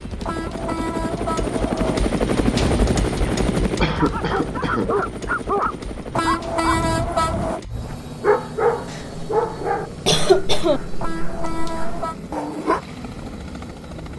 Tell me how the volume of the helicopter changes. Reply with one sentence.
The loudness of the helicopter goes down.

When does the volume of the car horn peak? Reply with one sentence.
The volume of the car horn peaks at 7 seconds.